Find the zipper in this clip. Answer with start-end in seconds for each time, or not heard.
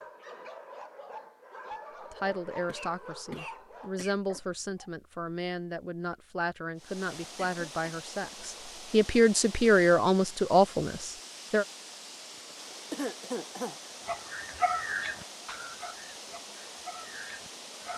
not heard.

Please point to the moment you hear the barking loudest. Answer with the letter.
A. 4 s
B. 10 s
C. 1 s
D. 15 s
D.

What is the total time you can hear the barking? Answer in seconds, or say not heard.
9 s.